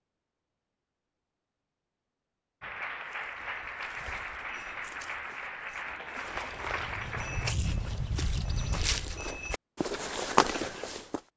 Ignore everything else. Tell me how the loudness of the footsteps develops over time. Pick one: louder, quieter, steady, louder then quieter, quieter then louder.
louder.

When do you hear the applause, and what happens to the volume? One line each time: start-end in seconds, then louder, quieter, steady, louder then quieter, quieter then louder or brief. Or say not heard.
2.6-7.5 steady.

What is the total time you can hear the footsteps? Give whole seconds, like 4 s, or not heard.
8 s.